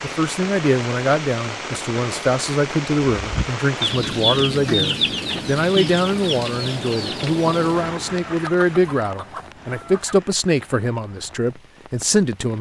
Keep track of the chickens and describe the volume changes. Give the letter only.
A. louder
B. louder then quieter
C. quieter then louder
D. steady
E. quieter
E.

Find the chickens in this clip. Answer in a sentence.
The chickens can be heard from 3.2 to 10.2 s.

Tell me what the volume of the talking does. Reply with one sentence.
The volume of the talking stays about the same.